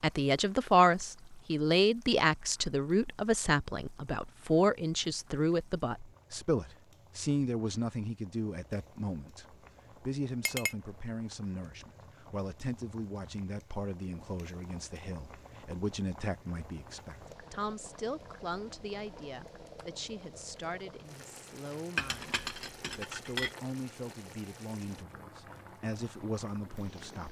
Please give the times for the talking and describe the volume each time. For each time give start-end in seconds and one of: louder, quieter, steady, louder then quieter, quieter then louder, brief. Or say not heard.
0.0-27.2 quieter.